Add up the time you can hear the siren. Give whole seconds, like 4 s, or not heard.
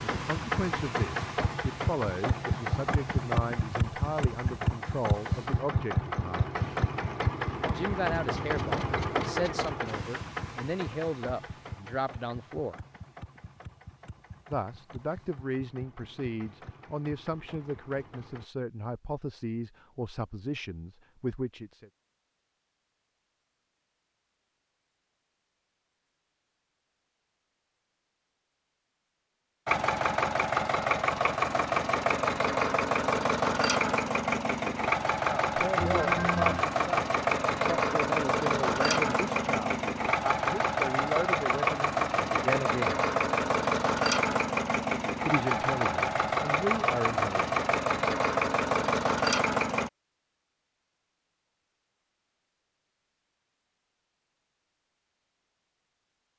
not heard.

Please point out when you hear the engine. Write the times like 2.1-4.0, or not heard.
0.0-18.4, 29.6-49.9.